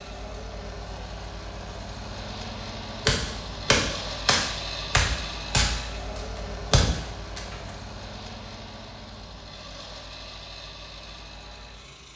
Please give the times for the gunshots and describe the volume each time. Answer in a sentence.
You can hear the gunshots from 3.0 to 7.7 s, getting quieter then louder.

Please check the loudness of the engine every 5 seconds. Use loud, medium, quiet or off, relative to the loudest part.
loud, loud, medium.